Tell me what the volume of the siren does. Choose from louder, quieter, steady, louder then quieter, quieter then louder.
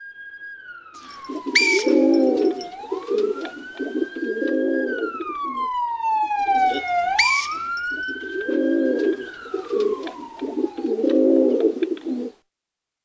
louder then quieter.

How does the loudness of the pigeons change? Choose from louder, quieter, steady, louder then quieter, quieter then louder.
quieter then louder.